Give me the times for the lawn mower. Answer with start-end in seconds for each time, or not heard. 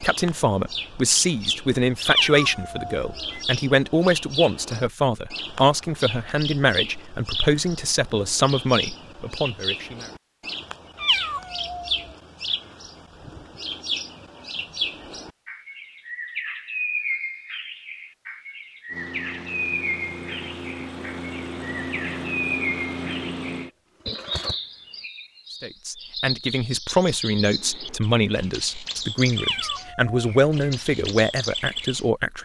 18.9-24.6.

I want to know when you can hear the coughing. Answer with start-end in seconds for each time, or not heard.
not heard.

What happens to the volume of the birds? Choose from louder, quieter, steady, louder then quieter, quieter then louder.
steady.